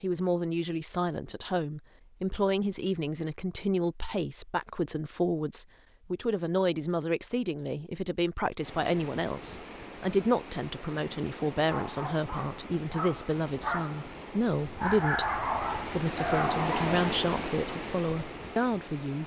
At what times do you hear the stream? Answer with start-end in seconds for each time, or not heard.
8.6-19.2.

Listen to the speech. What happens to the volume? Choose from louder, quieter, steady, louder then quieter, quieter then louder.
steady.